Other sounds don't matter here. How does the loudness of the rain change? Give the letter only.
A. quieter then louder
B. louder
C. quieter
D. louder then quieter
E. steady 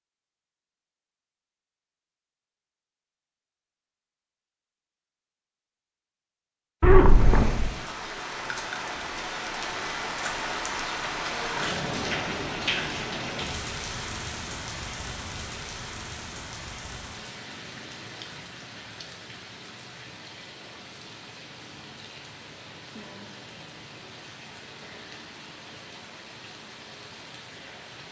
C.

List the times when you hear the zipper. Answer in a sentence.
You can hear the zipper from 6.8 to 7.7 s.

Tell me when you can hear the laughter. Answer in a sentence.
You can't hear the laughter here.